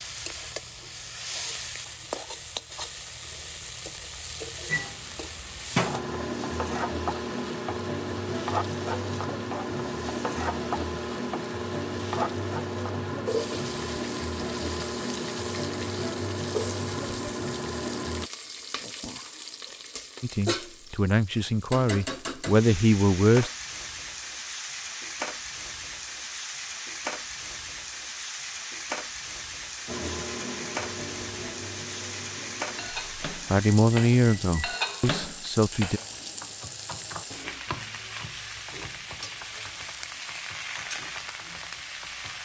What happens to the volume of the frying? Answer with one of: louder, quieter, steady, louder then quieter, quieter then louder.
steady.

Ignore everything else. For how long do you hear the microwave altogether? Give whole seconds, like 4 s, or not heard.
19 s.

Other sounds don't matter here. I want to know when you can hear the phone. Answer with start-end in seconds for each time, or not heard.
not heard.